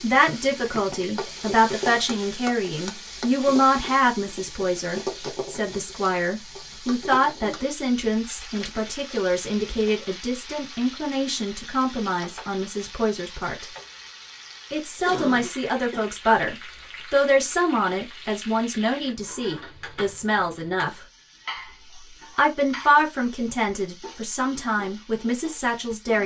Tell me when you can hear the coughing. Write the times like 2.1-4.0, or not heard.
0.2-1.0, 15.1-16.1.